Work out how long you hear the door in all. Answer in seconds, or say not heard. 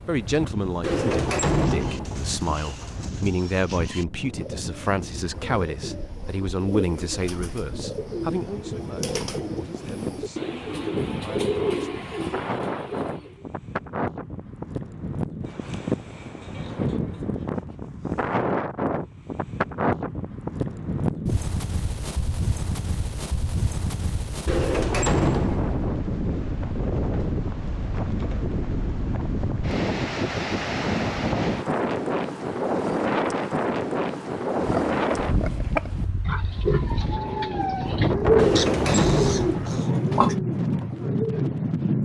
4 s.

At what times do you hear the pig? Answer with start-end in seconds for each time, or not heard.
34.5-40.4.